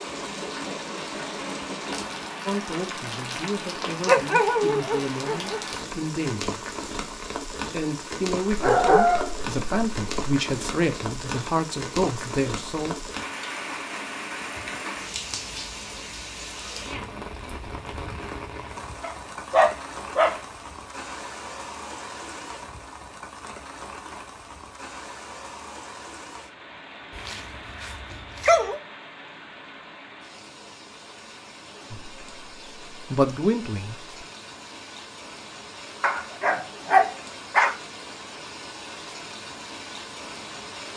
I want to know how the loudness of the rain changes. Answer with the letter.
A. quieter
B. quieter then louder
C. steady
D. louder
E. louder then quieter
A.